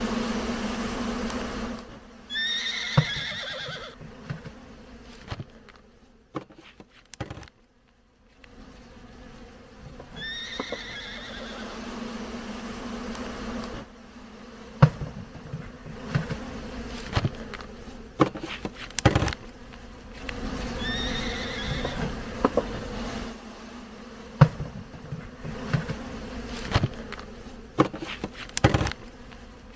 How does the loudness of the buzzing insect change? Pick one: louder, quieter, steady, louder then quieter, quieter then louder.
quieter then louder.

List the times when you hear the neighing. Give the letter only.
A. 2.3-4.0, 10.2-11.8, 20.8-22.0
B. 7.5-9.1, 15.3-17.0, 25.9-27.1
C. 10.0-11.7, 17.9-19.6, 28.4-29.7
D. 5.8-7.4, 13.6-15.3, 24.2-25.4
A.